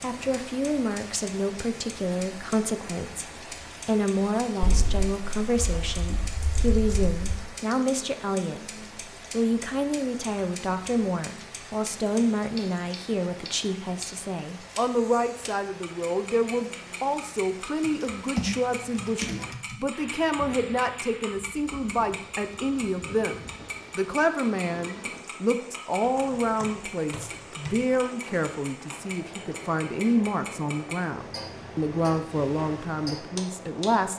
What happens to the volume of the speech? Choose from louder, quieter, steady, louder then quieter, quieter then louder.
steady.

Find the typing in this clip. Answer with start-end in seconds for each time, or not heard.
4.6-7.5, 17.8-19.8, 26.0-28.1.